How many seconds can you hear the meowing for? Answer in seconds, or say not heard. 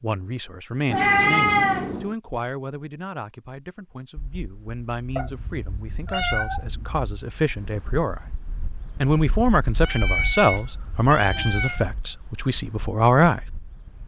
5 s.